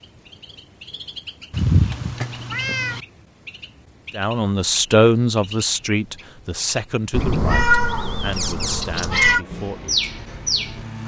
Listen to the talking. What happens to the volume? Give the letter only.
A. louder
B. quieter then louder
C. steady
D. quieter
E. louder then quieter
D.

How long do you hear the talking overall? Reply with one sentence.
The talking can be heard for 6 seconds in total.